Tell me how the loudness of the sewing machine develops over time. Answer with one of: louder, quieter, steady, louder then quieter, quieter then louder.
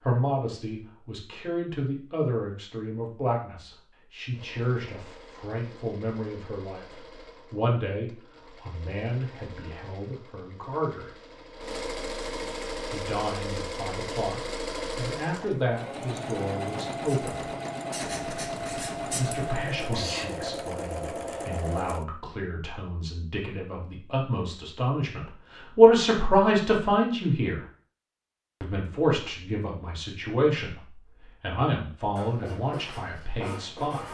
louder.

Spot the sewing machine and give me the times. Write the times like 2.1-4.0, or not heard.
4.3-22.1.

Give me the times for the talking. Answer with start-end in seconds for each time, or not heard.
0.0-11.1, 12.9-17.4, 19.1-27.6, 28.6-34.0.